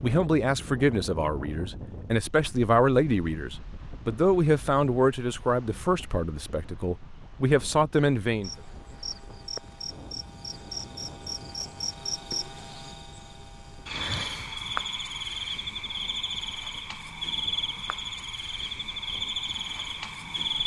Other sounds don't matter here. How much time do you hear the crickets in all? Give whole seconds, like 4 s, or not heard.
12 s.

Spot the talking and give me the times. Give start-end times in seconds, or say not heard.
0.0-8.5.